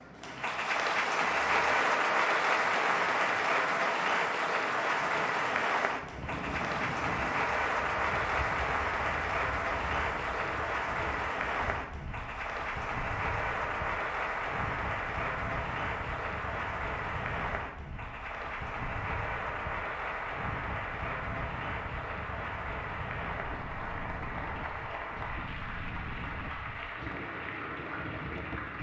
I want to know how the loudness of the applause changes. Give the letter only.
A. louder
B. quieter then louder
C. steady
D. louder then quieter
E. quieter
E.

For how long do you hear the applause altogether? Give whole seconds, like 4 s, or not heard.
29 s.